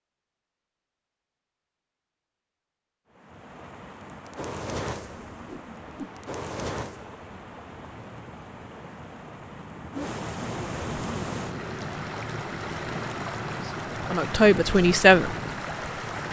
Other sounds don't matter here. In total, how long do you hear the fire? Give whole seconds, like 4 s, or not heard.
12 s.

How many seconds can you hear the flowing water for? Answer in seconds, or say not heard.
13 s.